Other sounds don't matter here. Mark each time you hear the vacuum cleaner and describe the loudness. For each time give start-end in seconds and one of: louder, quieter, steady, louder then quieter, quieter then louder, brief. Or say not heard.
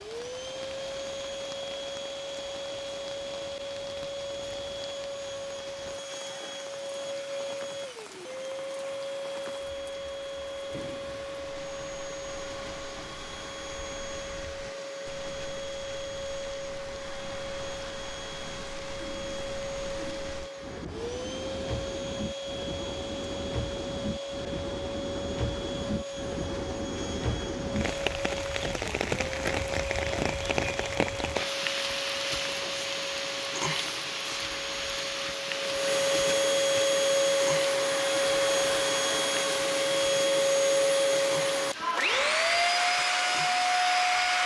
0.0-44.4 louder.